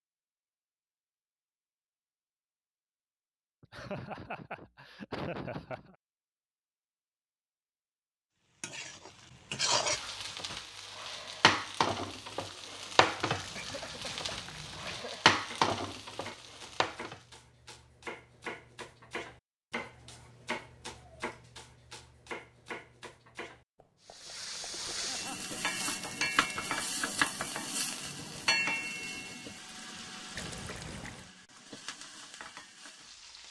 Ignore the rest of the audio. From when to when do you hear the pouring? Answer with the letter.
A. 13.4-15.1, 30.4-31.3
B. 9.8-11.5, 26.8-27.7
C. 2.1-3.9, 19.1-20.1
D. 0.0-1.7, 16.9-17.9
A.